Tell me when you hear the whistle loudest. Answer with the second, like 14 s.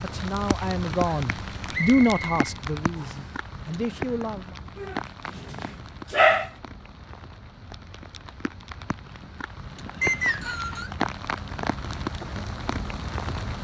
10 s.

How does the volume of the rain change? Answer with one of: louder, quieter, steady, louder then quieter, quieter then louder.
quieter then louder.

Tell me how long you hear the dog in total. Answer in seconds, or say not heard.
2 s.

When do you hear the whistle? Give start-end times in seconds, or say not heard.
1.7-3.3, 10.0-10.9.